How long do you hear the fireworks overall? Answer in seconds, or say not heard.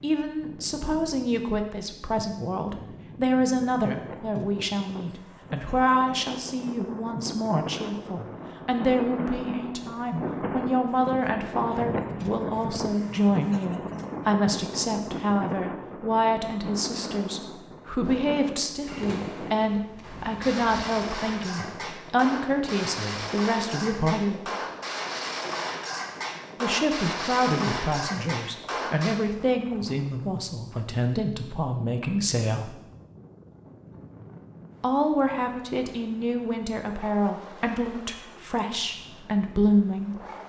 11 s.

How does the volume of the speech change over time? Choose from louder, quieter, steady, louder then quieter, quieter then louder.
steady.